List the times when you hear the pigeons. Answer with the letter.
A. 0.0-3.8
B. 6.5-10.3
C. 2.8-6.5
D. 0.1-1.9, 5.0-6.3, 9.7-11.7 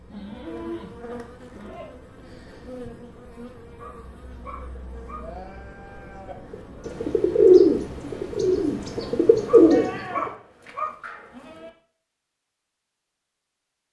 B.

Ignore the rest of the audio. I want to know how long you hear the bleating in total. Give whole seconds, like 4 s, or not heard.
5 s.